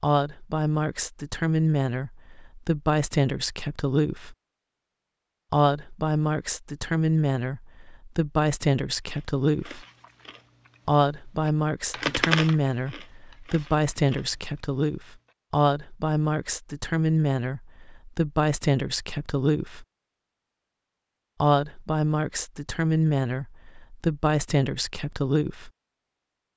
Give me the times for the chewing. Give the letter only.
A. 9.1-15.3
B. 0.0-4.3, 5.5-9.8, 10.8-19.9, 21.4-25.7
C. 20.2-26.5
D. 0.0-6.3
A.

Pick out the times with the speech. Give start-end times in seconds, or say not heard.
0.0-4.3, 5.5-9.8, 10.8-19.9, 21.4-25.7.